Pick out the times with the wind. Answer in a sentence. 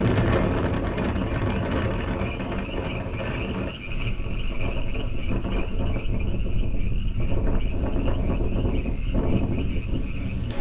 You can hear the wind from 0.0 to 10.5 s.